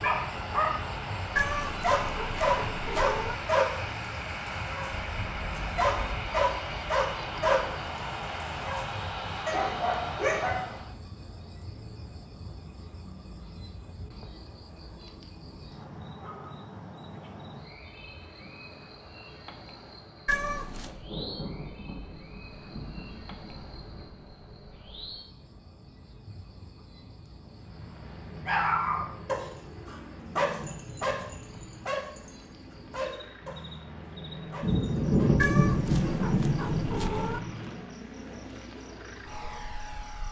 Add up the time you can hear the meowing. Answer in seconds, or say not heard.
5 s.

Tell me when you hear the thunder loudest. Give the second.
35 s.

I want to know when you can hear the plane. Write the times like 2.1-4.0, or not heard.
0.0-10.9, 27.4-40.2.